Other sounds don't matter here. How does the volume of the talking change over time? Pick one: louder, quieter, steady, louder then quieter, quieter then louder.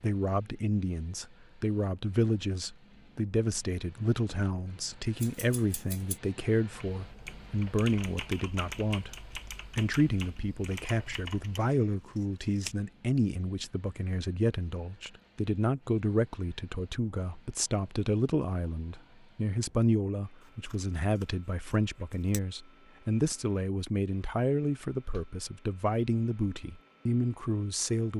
steady.